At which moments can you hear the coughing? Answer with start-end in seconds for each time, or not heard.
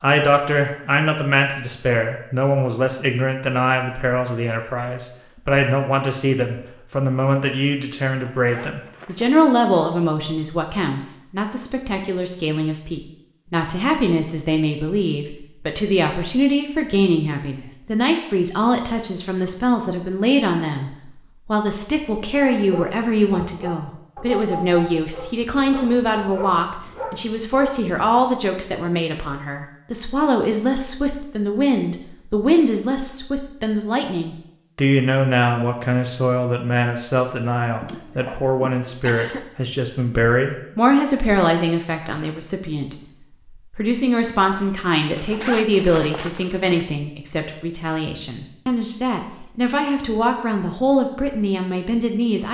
37.8-39.5.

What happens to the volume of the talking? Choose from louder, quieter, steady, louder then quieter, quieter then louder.
steady.